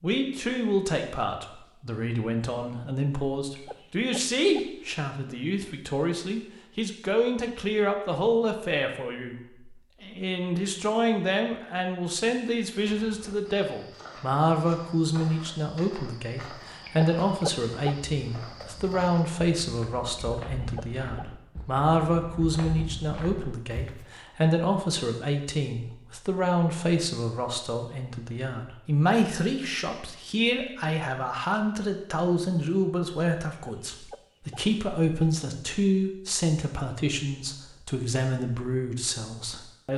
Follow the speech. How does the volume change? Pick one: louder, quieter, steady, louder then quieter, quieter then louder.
steady.